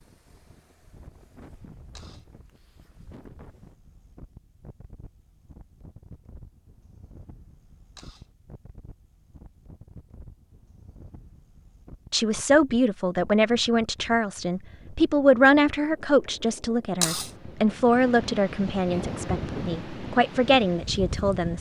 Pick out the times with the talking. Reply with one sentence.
The talking can be heard from 12.1 to 21.5 s.